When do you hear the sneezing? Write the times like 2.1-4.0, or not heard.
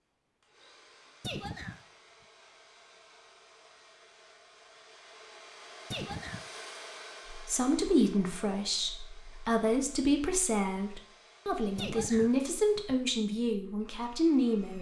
1.2-1.8, 5.9-6.5, 11.8-13.0.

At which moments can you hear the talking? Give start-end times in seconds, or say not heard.
7.3-14.7.